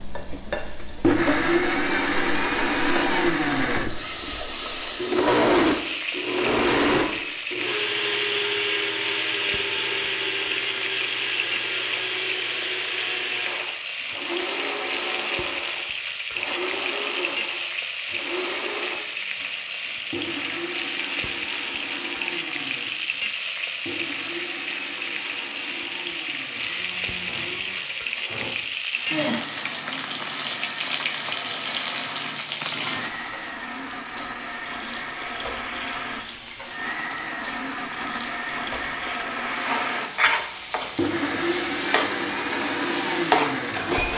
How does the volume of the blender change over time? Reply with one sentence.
The loudness of the blender goes down, then up.